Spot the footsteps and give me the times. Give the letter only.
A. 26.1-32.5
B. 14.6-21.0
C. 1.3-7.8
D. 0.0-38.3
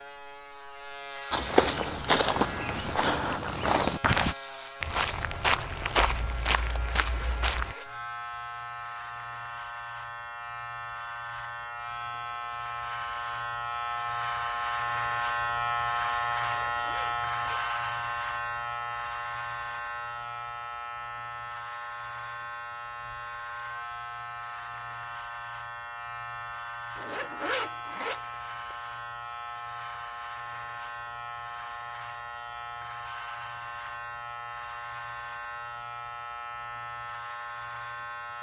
C.